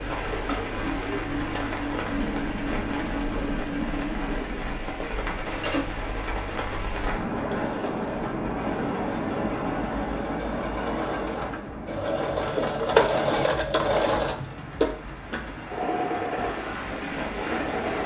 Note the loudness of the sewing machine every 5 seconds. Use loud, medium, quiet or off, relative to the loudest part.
medium, medium, loud, medium.